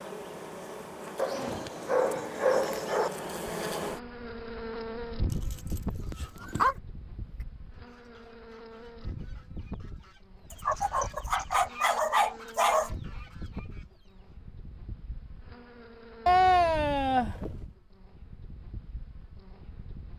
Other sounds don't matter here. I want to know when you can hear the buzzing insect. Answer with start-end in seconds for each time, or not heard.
0.0-20.1.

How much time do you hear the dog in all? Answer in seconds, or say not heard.
7 s.